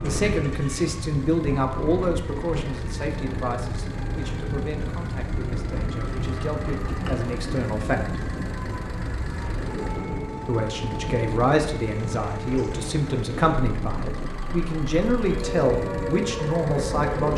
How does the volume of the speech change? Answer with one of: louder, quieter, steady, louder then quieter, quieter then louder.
quieter then louder.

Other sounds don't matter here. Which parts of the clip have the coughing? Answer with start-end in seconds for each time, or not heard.
not heard.